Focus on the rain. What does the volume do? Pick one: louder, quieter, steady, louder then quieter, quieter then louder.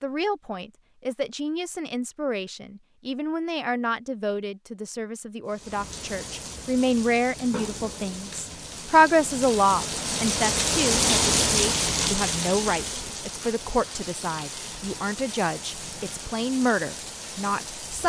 louder then quieter.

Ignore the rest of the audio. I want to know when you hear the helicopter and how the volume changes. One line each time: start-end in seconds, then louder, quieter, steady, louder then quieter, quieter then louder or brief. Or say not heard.
not heard.